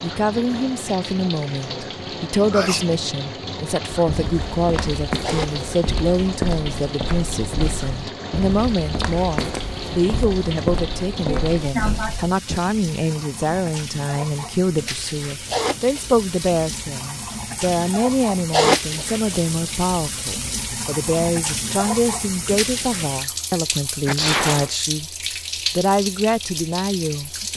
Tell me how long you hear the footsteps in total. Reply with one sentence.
You can hear the footsteps for 9 seconds altogether.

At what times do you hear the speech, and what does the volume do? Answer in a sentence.
The speech can be heard from 0.0 to 25.1 s, at a steady volume; and briefly from 25.8 to 27.5 s.